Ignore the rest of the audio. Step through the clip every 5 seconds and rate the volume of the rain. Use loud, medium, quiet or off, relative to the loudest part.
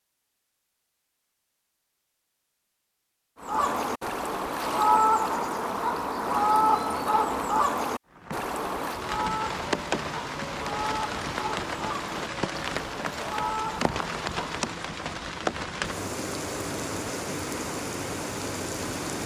off, loud, loud, loud.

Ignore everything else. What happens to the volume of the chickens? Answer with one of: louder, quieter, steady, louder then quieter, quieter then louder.
quieter.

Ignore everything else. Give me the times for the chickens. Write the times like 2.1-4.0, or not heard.
3.4-14.7.